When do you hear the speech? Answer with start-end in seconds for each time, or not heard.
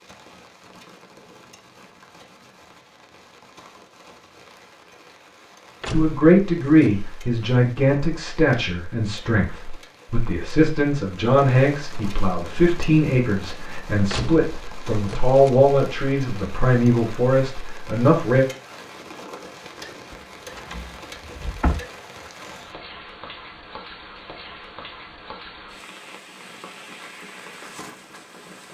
5.9-18.4.